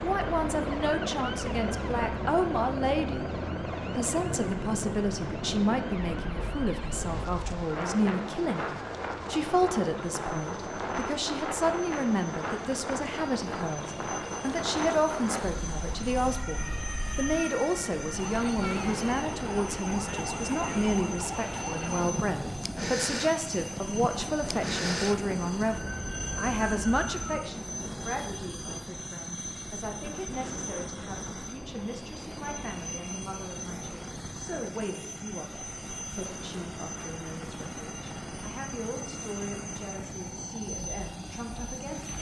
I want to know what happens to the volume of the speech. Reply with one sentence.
The loudness of the speech goes down.